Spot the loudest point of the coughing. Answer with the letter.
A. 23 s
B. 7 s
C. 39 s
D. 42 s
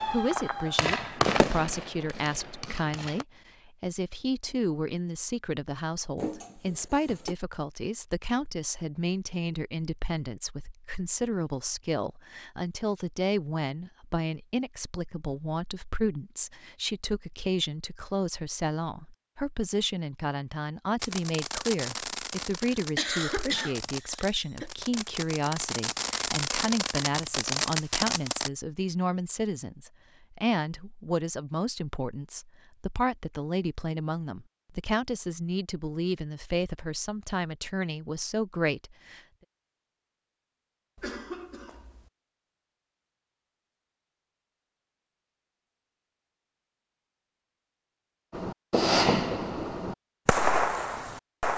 A.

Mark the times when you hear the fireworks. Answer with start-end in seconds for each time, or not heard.
0.0-3.2, 21.0-28.5, 48.3-51.5.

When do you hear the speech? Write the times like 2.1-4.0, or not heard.
0.1-39.2.